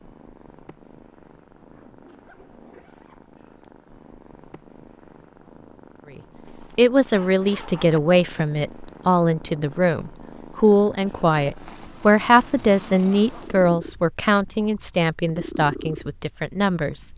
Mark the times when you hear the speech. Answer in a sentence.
The speech can be heard from 6.8 to 17.1 s.